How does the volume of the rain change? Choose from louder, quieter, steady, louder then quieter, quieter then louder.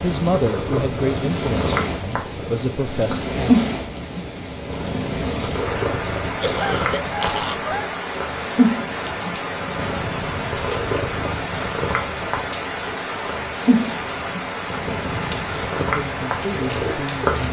steady.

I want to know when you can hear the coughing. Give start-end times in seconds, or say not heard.
6.3-7.9.